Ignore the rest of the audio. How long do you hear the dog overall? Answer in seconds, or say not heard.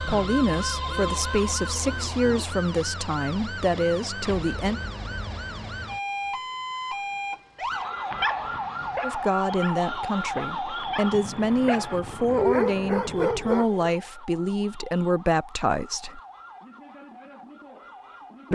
6 s.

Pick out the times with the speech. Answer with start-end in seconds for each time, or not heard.
0.0-4.8, 9.0-16.2.